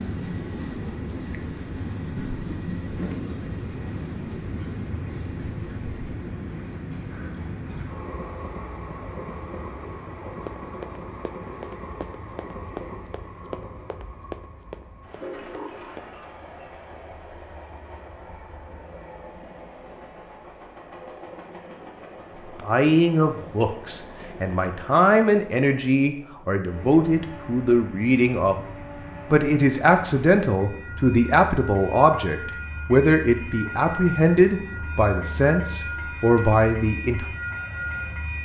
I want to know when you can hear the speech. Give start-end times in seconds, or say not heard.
22.6-28.6, 29.3-37.2.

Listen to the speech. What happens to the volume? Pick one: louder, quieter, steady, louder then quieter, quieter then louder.
steady.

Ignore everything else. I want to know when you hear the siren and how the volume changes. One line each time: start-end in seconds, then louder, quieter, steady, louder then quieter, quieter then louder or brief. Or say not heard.
not heard.